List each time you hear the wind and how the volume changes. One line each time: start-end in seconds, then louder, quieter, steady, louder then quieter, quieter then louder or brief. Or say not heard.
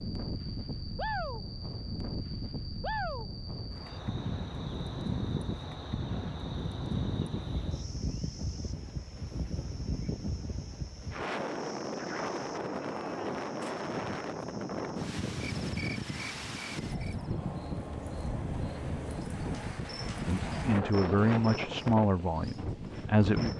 0.0-23.5 steady.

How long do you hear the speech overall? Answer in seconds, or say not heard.
3 s.